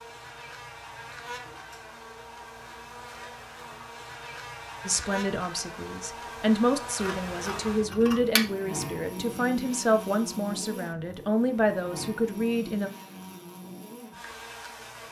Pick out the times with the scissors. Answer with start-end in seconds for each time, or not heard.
7.0-8.4.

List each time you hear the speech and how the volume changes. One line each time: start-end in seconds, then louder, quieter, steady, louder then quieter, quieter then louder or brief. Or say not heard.
4.8-12.9 steady.